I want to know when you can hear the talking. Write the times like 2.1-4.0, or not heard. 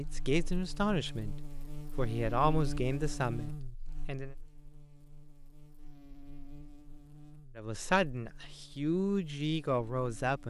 0.0-1.4, 1.9-4.3, 7.5-10.4.